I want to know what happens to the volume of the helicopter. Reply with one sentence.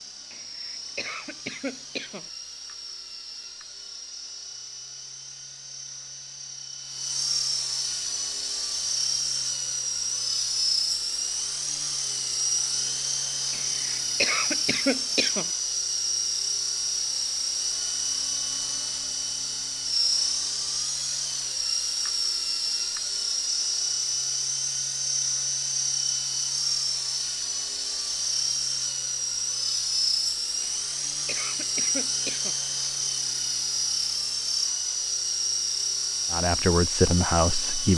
The volume of the helicopter goes up.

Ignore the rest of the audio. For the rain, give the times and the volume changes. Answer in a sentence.
You can't hear the rain here.